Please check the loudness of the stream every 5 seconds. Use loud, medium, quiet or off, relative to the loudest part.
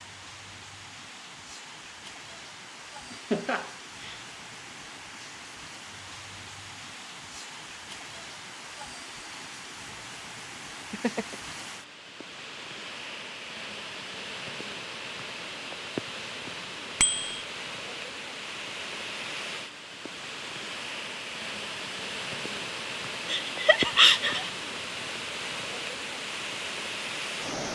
medium, medium, medium, loud, loud, loud.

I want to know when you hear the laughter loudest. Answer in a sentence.
The volume of the laughter peaks at 24 seconds.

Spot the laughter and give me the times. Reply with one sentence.
You can hear the laughter from 3.1 to 4.2 s, from 10.9 to 11.6 s and from 23.3 to 24.5 s.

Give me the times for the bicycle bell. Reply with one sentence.
You can hear the bicycle bell from 17.0 to 17.4 s.